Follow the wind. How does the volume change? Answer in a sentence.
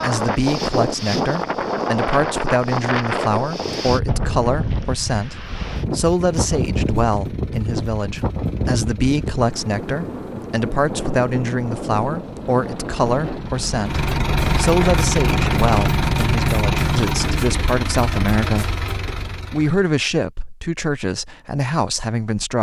The loudness of the wind goes down.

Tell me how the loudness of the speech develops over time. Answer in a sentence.
The loudness of the speech stays about the same.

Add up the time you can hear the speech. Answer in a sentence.
You can hear the speech for 22 seconds altogether.